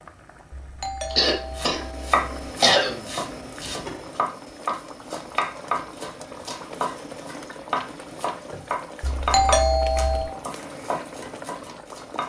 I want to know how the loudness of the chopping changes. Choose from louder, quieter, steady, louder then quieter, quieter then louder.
quieter.